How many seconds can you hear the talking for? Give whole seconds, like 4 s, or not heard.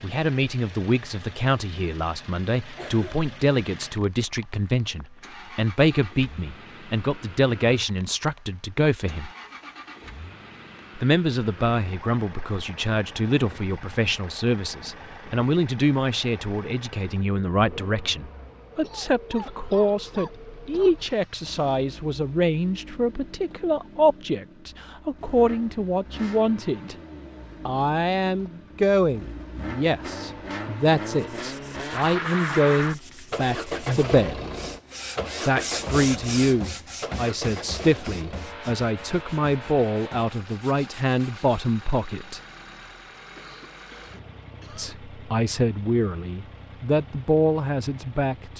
43 s.